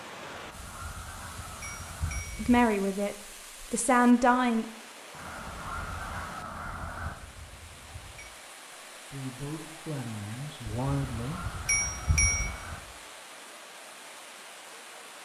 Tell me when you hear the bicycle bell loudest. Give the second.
12 s.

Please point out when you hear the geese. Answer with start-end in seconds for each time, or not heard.
0.2-2.2, 5.1-7.2, 10.9-12.8.